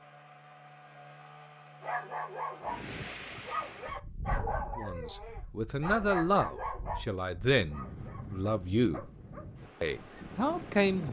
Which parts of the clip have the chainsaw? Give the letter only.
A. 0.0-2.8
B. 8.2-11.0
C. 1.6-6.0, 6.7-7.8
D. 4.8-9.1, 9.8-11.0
A.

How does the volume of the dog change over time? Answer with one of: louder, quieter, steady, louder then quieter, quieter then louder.
quieter.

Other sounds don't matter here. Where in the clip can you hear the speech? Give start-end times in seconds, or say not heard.
4.8-9.1, 9.8-11.0.